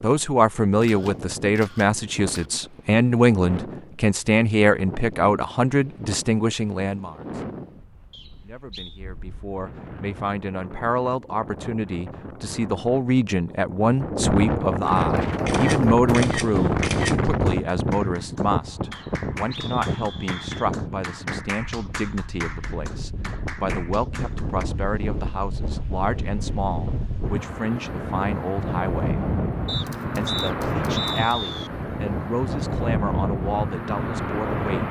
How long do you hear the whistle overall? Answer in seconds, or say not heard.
5 s.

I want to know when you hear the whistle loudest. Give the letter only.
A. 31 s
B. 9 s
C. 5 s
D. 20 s
A.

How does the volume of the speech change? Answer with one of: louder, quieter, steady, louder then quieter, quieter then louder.
quieter.